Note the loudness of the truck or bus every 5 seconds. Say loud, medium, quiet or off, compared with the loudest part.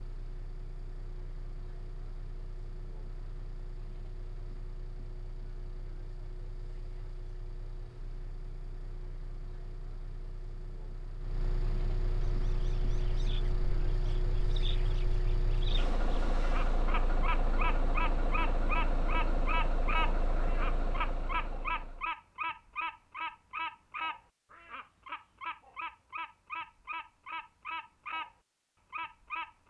quiet, quiet, loud, loud, loud, off.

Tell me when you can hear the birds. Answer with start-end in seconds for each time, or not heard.
12.3-29.6.